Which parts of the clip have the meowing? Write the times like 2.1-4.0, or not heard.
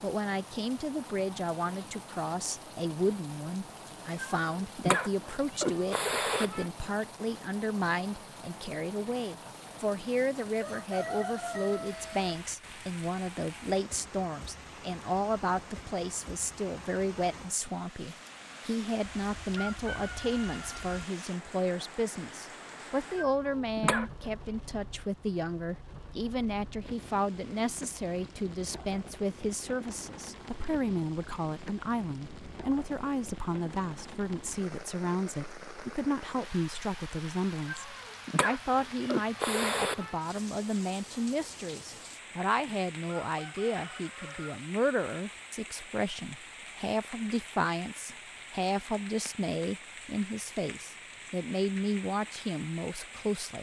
4.1-6.7, 23.1-24.3, 37.6-40.1.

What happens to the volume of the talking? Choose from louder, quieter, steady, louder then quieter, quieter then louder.
steady.